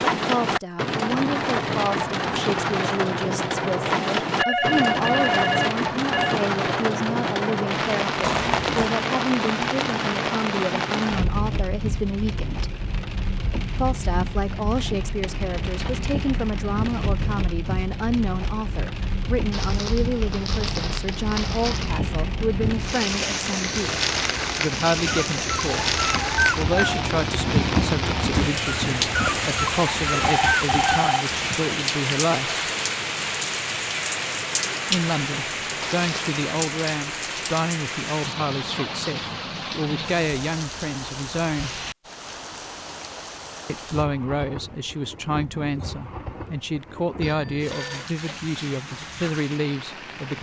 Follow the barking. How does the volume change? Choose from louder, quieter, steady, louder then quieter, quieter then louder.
steady.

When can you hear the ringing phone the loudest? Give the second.
5 s.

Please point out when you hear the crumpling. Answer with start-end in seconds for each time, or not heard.
8.2-8.9, 19.5-21.9, 35.8-36.4.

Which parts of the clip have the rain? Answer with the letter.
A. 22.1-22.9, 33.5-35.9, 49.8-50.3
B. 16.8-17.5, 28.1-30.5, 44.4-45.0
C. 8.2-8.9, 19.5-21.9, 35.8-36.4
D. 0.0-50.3
D.